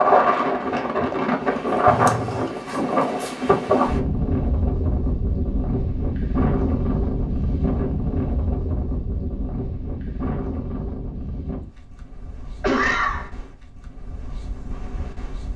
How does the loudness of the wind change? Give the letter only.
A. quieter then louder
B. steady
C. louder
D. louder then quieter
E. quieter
E.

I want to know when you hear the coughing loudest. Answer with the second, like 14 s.
13 s.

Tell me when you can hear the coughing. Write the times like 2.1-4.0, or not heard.
1.9-2.5, 12.6-13.3.